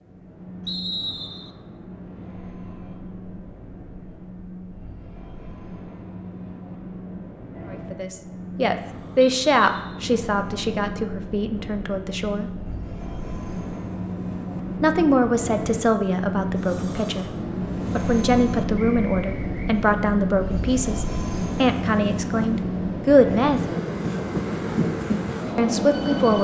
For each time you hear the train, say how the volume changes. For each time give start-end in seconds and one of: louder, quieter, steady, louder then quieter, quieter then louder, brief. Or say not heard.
0.0-26.3 louder.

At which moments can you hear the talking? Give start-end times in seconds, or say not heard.
7.7-12.5, 14.8-17.2, 17.9-23.6, 25.6-26.3.